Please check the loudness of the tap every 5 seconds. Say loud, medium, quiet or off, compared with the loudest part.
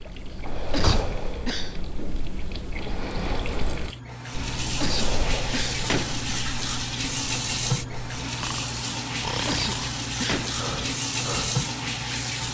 medium, loud, loud.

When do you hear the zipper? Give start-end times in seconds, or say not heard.
not heard.